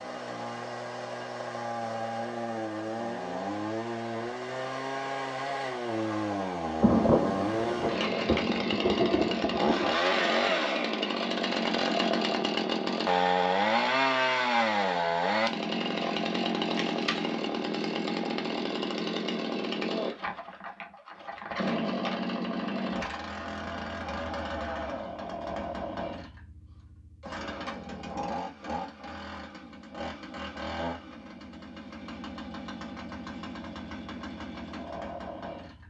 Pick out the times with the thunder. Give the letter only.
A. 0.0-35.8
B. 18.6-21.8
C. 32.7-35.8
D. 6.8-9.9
D.